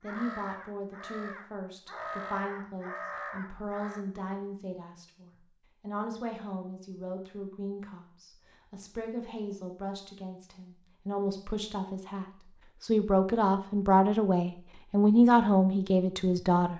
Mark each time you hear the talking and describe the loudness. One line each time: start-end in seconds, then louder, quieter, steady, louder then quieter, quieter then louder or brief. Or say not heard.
0.0-16.7 louder.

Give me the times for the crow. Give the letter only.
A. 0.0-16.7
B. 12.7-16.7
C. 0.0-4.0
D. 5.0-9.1
C.